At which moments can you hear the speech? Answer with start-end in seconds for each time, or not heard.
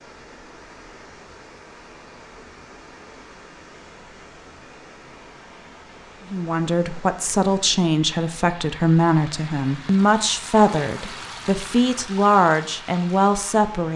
6.3-13.9.